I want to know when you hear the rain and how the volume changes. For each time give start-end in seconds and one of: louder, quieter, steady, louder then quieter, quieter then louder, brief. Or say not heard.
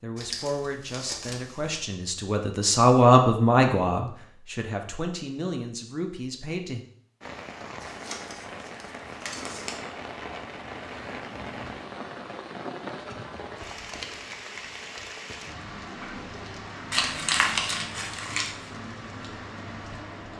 7.2-20.3 steady.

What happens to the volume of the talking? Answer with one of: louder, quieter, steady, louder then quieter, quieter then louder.
louder then quieter.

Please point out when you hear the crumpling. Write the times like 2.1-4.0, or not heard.
0.1-1.8, 7.8-9.8, 16.9-18.5.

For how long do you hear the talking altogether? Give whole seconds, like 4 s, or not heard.
7 s.